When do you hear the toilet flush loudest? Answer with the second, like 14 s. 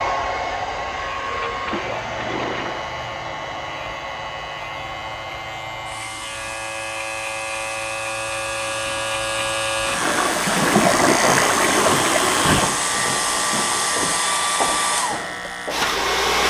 11 s.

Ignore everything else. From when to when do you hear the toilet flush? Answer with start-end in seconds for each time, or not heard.
1.2-2.9, 10.0-12.8.